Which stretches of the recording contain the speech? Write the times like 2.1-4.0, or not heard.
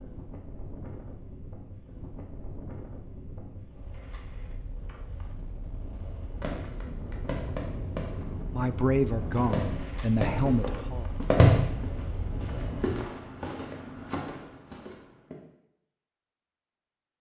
8.5-11.1.